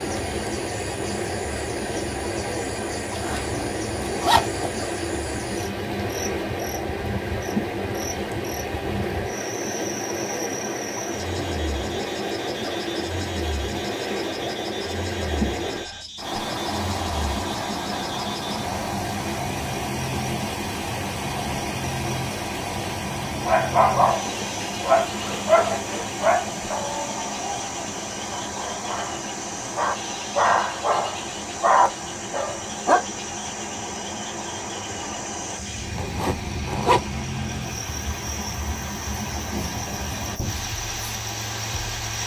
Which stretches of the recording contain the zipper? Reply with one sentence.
You can hear the zipper from 3.1 to 4.7 s, from 24.4 to 26.3 s and from 36.0 to 37.1 s.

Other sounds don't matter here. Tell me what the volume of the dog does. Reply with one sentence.
The volume of the dog goes down, then up.